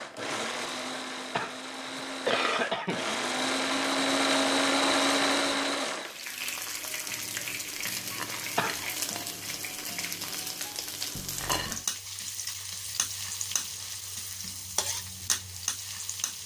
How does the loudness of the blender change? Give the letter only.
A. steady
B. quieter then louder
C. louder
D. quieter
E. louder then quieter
C.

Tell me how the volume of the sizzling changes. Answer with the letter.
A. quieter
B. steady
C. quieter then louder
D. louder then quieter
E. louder
B.